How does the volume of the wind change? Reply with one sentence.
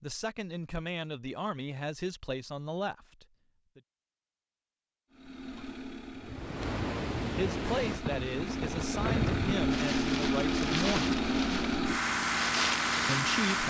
The loudness of the wind stays about the same.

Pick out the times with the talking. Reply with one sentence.
The talking can be heard from 0.0 to 3.8 s, from 7.3 to 11.2 s and from 13.1 to 13.6 s.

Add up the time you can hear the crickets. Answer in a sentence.
The crickets can't be heard in this clip.